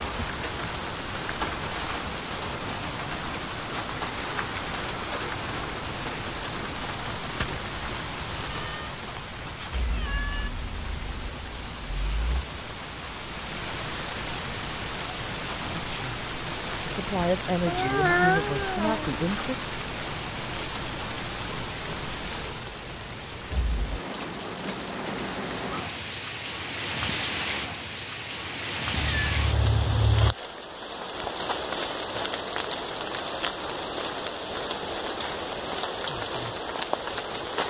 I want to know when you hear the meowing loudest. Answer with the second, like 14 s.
18 s.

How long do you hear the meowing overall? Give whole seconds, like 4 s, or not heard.
5 s.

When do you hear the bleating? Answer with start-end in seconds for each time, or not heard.
not heard.